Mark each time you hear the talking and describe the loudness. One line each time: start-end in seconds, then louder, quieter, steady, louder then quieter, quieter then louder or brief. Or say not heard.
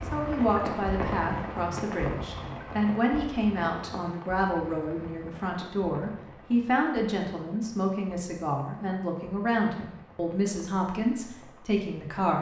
0.1-12.3 steady.